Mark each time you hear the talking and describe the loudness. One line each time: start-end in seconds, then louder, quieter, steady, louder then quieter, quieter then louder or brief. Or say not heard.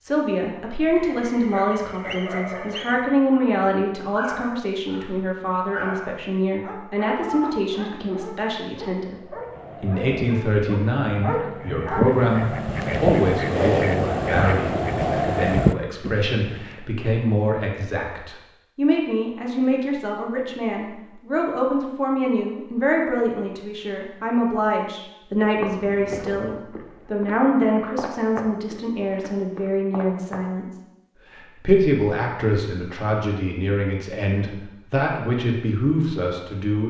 0.0-36.8 steady.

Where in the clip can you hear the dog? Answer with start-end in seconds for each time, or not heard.
0.9-12.1.